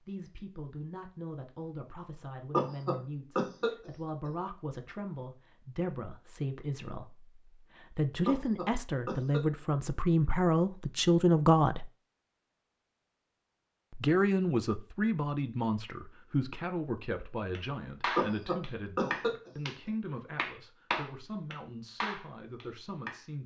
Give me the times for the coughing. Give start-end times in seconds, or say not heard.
2.5-4.3, 8.2-9.4, 18.1-19.5.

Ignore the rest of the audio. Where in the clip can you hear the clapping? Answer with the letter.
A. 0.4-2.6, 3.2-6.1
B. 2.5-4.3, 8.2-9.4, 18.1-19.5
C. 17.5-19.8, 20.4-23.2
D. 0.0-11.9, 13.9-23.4
C.